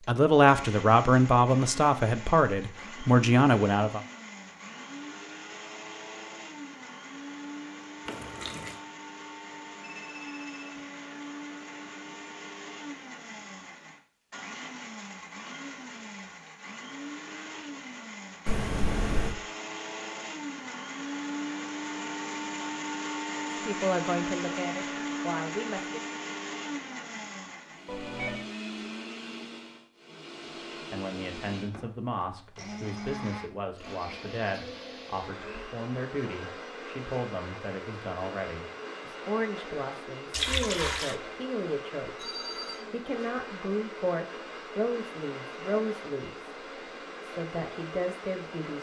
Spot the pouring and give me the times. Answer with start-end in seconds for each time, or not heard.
8.1-8.8, 18.4-19.4, 40.3-41.1.